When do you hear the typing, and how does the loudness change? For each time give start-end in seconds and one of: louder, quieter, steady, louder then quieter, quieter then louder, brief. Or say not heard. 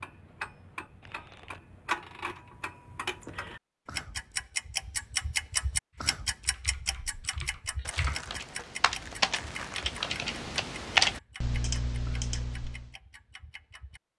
6.0-12.9 louder then quieter.